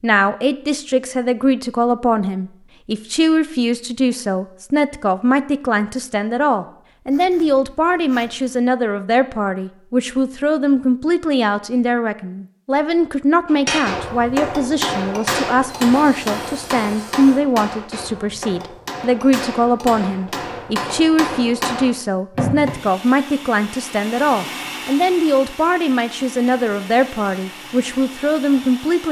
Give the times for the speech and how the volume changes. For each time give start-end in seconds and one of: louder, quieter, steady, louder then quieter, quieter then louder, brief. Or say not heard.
0.0-29.0 steady.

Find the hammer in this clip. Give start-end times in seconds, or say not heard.
13.4-22.7.